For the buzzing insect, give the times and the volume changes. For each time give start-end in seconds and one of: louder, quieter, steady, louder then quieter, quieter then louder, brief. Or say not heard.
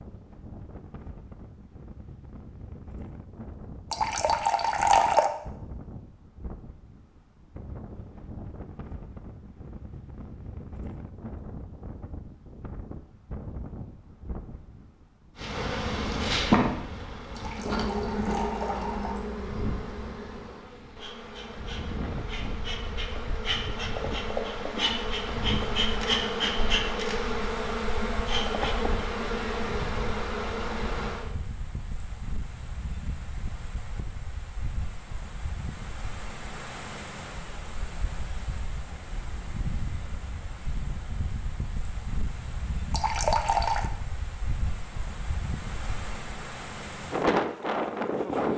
15.3-31.3 quieter then louder.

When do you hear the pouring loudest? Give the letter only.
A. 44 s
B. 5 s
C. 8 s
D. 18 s
B.